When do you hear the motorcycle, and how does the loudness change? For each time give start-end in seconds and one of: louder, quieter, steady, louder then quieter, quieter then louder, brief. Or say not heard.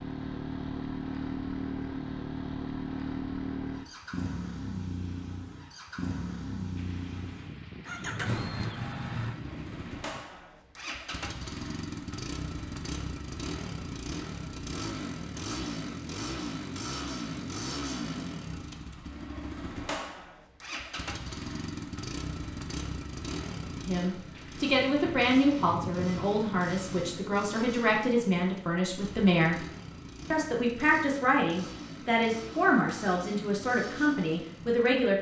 0.0-35.1 quieter.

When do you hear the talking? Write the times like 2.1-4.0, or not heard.
23.9-29.6, 30.3-35.1.